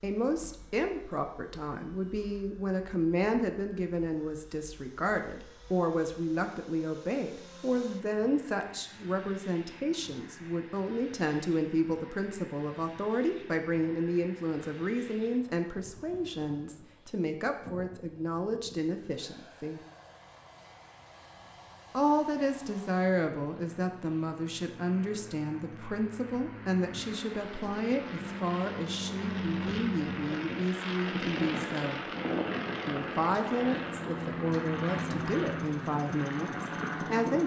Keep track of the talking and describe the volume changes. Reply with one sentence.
The loudness of the talking stays about the same.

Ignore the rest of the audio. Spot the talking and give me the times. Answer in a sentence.
The talking can be heard from 0.0 to 19.8 s, from 21.9 to 32.0 s and from 32.9 to 37.4 s.